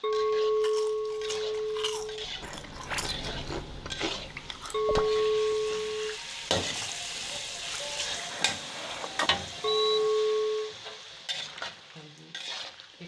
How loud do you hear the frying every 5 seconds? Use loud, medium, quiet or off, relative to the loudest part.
medium, loud, medium.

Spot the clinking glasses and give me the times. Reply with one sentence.
You can hear the clinking glasses from 0.0 to 2.2 s, from 4.7 to 6.2 s and from 9.6 to 10.8 s.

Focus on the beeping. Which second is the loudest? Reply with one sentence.
The volume of the beeping peaks at 10 seconds.